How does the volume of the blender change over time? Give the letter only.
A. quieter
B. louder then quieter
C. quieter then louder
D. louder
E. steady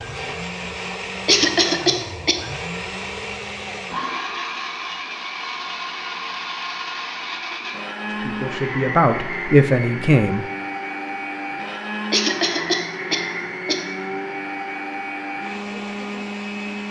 E.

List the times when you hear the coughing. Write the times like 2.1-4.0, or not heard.
1.2-2.5, 12.1-13.8.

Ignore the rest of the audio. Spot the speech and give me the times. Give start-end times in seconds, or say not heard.
8.1-10.4.